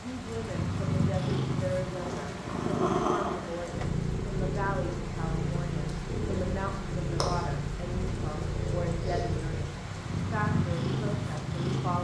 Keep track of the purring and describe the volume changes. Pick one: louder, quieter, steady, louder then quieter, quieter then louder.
steady.